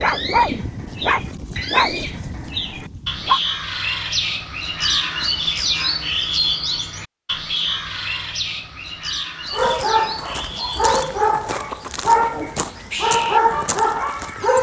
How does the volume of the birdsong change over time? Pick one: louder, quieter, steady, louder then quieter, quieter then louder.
louder then quieter.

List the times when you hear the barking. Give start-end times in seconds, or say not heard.
0.0-3.4, 9.5-14.5.